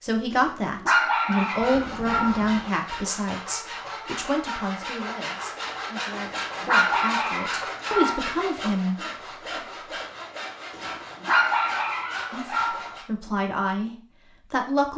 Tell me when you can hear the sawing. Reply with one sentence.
You can hear the sawing from 1.3 to 13.1 s.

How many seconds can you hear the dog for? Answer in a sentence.
You can hear the dog for 7 seconds altogether.